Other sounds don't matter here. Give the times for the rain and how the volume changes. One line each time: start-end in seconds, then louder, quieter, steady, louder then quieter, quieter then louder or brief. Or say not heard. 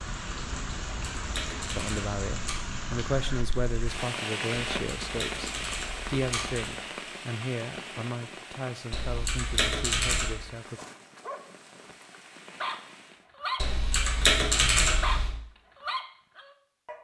0.0-13.2 quieter.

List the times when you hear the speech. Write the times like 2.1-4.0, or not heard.
1.6-10.8.